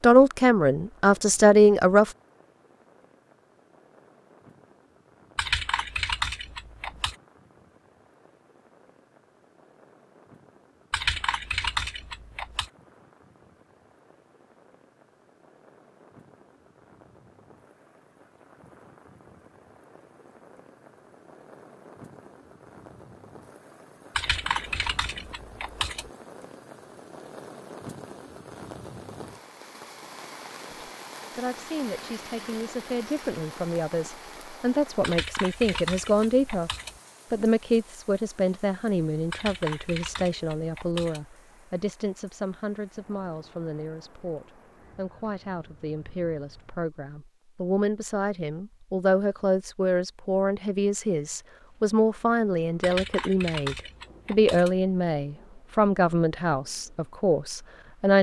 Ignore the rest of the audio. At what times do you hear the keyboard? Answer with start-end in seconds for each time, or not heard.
5.3-7.2, 10.9-12.7, 24.1-26.1, 35.0-37.0, 39.3-41.2, 52.8-54.8.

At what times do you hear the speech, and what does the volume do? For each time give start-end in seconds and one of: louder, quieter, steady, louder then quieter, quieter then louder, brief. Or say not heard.
0.0-2.1 brief
30.7-36.7 louder
37.3-58.1 quieter then louder.